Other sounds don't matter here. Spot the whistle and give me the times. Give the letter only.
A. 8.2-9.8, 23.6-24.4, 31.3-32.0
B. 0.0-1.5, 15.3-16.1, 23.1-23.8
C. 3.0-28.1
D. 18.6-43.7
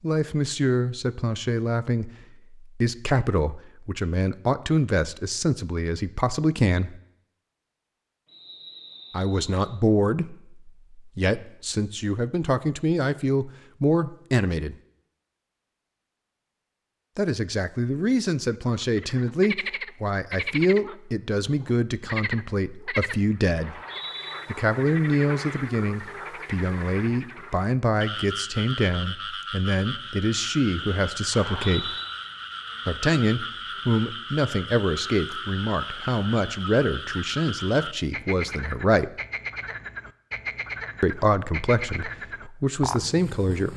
A.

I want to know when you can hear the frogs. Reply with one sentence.
The frogs can be heard from 18.6 to 43.7 s.